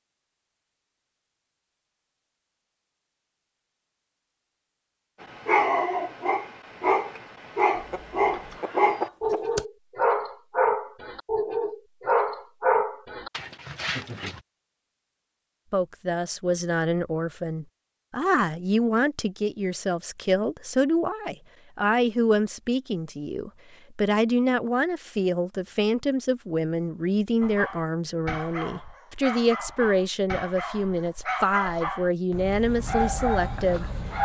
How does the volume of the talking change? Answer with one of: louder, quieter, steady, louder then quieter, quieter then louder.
steady.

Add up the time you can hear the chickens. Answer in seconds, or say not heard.
2 s.